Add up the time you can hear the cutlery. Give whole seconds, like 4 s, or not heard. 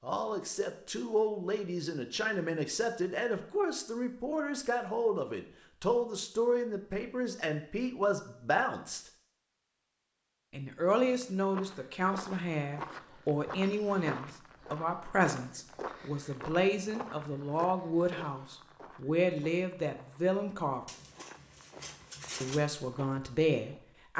2 s.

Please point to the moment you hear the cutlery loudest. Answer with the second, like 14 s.
22 s.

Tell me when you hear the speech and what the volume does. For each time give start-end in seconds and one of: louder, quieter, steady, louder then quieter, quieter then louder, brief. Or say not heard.
0.0-9.0 steady
10.5-20.9 steady
22.4-24.1 brief.